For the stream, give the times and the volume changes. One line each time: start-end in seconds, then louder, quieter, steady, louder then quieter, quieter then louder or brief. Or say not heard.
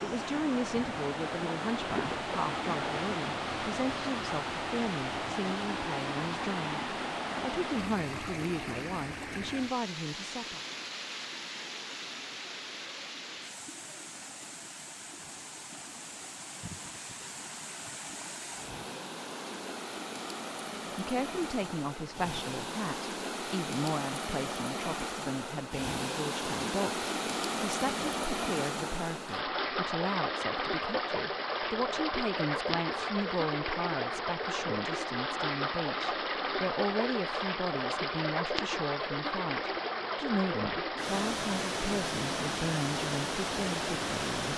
0.0-44.5 quieter then louder.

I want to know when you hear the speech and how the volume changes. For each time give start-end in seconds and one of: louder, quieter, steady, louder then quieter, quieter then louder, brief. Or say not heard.
0.0-10.6 steady
20.9-44.5 steady.